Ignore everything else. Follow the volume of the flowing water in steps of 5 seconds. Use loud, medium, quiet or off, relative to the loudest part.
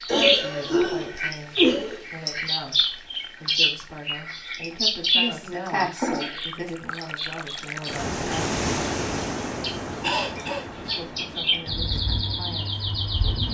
quiet, loud, medium.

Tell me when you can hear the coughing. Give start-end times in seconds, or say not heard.
0.1-2.0, 5.1-6.7, 10.0-10.9.